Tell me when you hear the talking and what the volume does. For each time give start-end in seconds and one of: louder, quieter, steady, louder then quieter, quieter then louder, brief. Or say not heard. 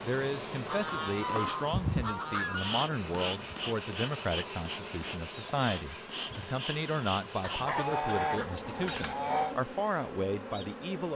0.0-11.1 steady.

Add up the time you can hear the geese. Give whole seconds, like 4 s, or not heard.
5 s.